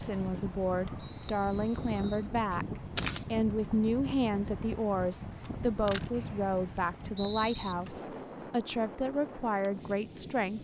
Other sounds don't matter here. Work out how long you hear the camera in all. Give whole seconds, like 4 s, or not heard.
2 s.